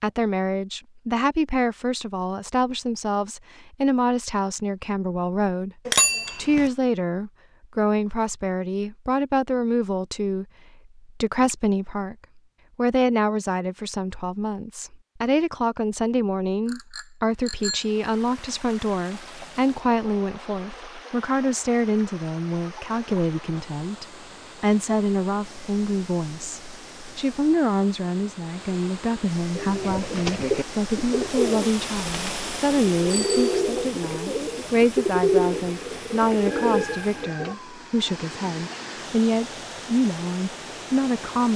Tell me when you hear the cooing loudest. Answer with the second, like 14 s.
35 s.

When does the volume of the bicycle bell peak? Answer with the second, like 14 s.
6 s.